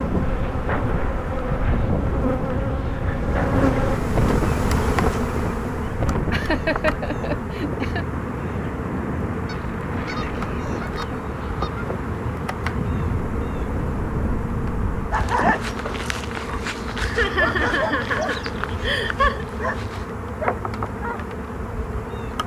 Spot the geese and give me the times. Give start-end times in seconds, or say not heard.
9.4-11.9.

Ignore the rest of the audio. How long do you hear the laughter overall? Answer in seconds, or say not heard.
4 s.